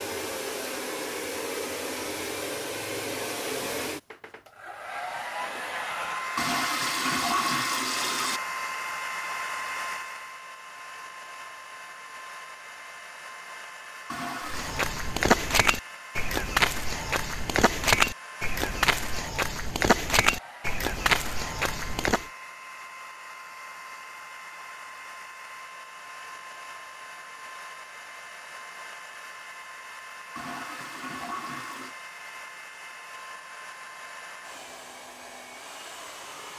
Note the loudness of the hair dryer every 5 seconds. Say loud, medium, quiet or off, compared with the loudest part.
loud, loud, medium, medium, medium, medium, medium, medium.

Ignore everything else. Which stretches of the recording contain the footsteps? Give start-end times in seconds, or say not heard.
14.4-22.2.